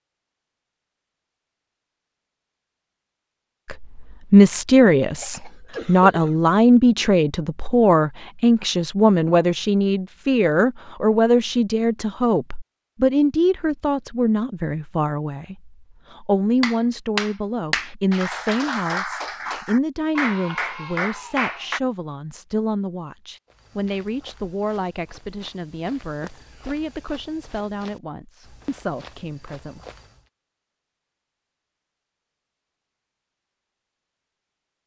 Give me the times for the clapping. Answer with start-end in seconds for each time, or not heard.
16.6-21.8.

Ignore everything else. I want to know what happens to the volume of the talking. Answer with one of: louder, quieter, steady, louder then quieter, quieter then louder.
quieter.